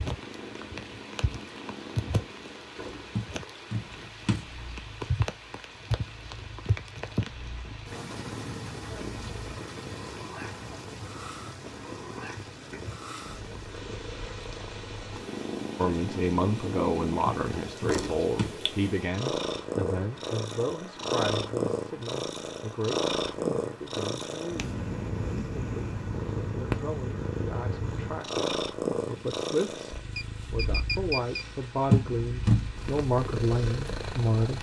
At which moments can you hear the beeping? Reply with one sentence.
You can hear the beeping from 30.1 to 31.4 s.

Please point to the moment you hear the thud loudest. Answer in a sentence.
The volume of the thud peaks at 32 seconds.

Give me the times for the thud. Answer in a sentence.
You can hear the thud from 3.1 to 4.5 s, from 17.2 to 18.6 s and from 31.9 to 32.6 s.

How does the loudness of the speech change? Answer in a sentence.
The loudness of the speech goes down, then up.